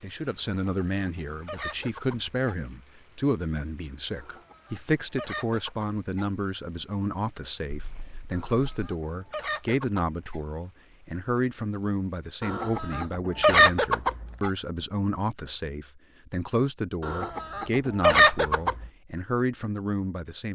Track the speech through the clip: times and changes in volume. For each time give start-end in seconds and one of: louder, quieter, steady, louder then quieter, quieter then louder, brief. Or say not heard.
0.0-20.4 steady.